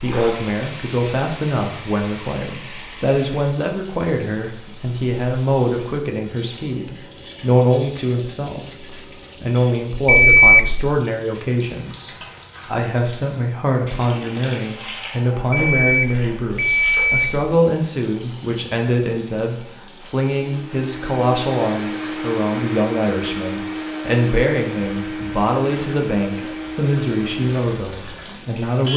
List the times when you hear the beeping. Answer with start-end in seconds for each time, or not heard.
10.1-11.0, 15.5-17.4.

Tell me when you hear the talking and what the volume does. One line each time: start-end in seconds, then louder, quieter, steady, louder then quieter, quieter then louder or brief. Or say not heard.
0.0-28.9 steady.